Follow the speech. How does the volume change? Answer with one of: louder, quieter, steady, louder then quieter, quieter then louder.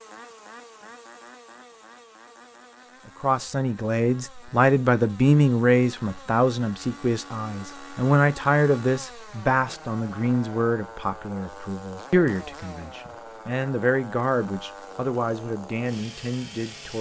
quieter.